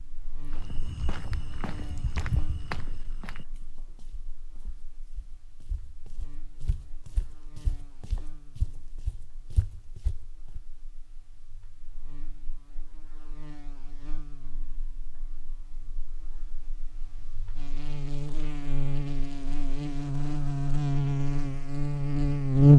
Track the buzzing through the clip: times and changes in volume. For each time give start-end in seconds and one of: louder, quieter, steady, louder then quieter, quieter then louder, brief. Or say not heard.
0.0-22.7 quieter then louder.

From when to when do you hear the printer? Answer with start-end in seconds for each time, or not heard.
not heard.